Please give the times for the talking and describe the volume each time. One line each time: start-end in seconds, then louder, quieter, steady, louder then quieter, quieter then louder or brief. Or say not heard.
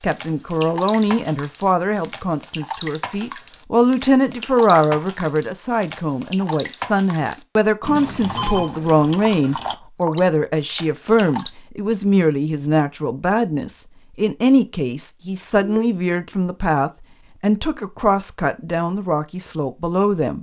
0.0-20.3 steady.